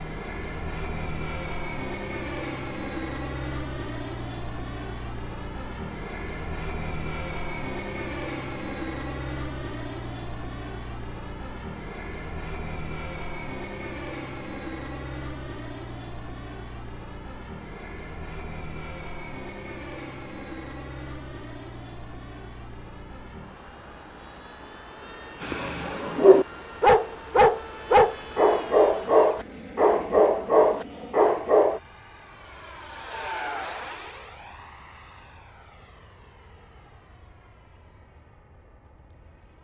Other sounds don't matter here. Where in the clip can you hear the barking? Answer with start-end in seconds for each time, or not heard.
25.4-31.8.